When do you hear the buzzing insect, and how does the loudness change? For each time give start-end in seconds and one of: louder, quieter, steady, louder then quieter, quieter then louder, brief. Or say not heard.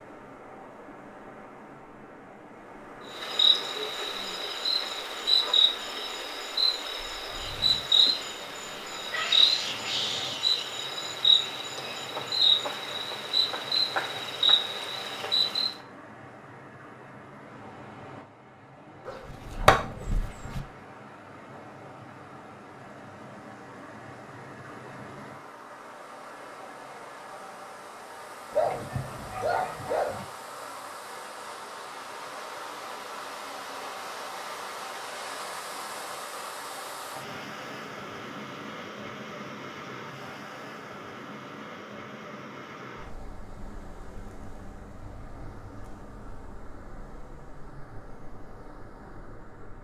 3.1-15.8 steady.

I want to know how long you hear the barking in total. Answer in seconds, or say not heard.
3 s.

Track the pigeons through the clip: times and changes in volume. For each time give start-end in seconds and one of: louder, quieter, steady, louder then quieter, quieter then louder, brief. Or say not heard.
not heard.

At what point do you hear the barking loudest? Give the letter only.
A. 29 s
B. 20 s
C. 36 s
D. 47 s
B.